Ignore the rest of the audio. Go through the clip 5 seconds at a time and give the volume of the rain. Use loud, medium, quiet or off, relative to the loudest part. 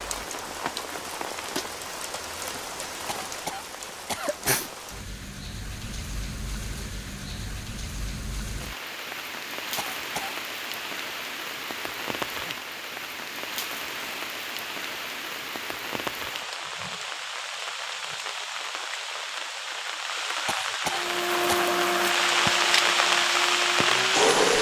medium, quiet, medium, medium, loud.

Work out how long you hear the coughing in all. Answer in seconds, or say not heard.
3 s.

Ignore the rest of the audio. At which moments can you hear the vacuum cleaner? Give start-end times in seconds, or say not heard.
20.9-24.4.